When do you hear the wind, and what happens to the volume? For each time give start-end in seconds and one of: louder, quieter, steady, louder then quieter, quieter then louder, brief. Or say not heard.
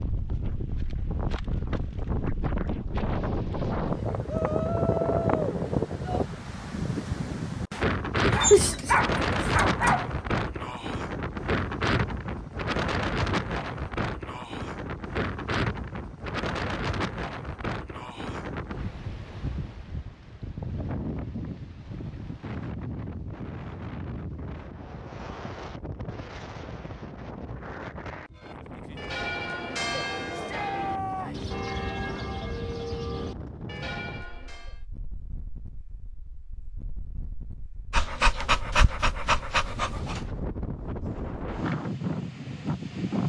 0.0-43.2 quieter.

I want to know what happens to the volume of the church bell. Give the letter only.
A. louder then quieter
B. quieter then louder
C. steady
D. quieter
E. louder
D.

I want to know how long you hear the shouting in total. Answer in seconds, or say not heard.
3 s.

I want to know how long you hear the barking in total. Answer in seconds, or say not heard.
4 s.